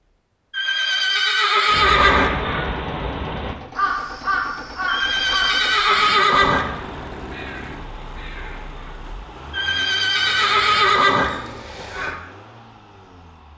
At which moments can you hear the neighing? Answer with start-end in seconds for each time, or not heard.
0.5-2.4, 4.8-6.7, 9.5-11.3.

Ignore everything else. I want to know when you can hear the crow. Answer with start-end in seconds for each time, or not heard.
1.6-12.2.